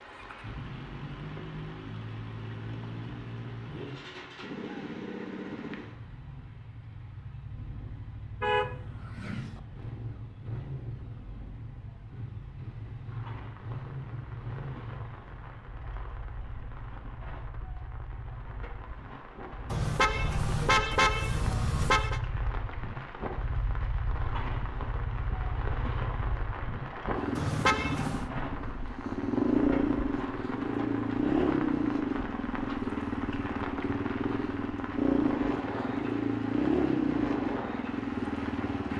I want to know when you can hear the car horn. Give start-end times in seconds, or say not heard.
8.4-9.6, 19.7-22.2, 27.4-28.2.